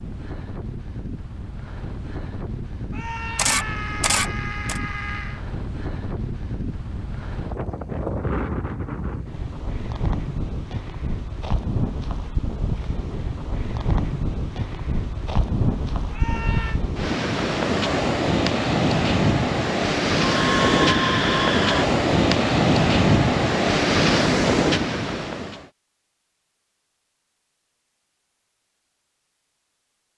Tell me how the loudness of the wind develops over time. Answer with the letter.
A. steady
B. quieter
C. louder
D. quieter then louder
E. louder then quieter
C.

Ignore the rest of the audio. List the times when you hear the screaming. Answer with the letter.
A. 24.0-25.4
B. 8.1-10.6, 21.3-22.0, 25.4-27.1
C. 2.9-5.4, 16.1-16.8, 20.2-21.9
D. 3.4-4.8
C.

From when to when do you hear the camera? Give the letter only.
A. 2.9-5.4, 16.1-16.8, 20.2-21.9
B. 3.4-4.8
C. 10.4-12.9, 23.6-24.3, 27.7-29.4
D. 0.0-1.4
B.